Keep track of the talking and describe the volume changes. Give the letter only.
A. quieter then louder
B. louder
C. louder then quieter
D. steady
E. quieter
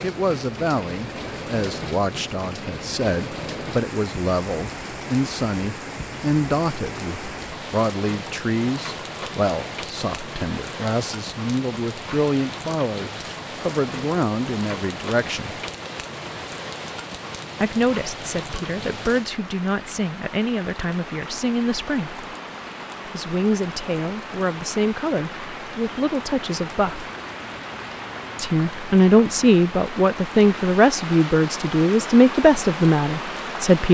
B.